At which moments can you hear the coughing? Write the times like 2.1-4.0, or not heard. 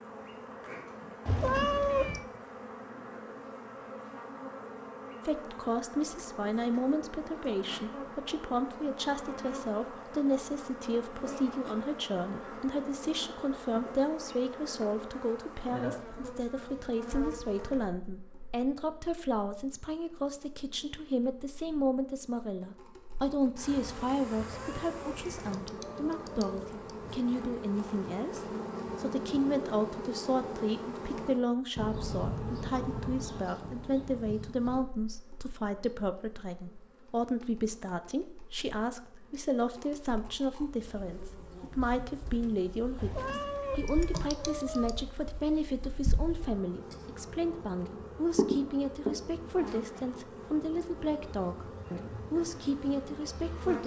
not heard.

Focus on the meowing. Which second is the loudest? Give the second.
2 s.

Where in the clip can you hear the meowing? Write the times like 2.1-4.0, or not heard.
1.2-2.2, 24.4-26.8, 43.0-45.0.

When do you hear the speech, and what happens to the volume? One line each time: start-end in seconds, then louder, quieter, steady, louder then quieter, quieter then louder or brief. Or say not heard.
5.2-53.8 steady.